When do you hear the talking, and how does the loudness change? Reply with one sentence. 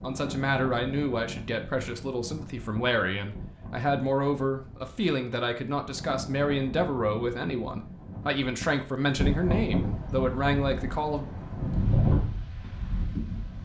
You can hear the talking from 0.0 to 11.2 s, at a steady volume.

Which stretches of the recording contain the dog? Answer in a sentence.
You can't hear the dog here.